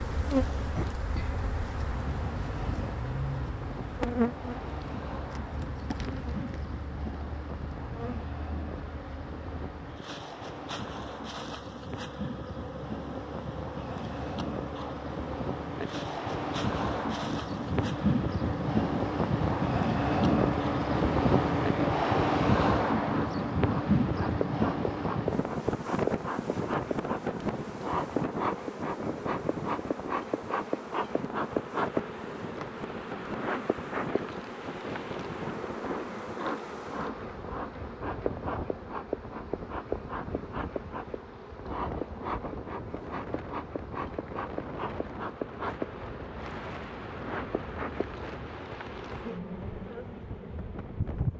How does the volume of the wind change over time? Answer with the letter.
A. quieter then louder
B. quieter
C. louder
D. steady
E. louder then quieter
E.